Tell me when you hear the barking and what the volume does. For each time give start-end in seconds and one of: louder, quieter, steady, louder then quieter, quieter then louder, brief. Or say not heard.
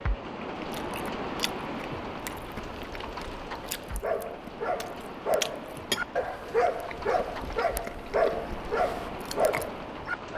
4.0-10.3 steady.